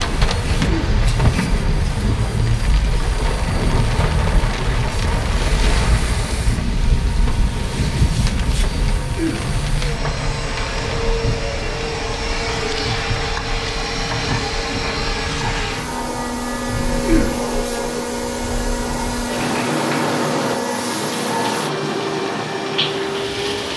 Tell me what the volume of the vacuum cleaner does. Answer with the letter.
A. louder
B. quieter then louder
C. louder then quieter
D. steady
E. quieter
A.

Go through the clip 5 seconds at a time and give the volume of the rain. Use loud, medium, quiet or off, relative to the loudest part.
loud, loud, medium, medium, loud.